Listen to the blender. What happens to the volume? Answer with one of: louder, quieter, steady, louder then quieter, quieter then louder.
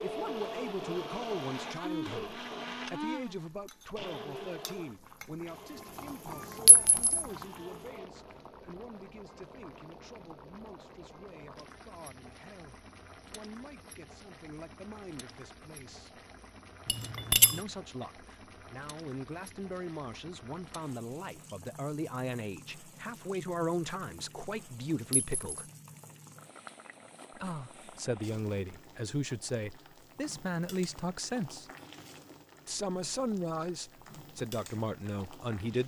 quieter.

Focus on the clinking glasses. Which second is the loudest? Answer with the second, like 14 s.
17 s.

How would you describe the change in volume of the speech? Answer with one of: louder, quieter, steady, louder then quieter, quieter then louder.
quieter then louder.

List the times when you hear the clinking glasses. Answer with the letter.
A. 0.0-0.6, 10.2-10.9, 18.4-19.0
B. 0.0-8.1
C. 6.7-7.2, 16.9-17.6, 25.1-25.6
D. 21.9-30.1
C.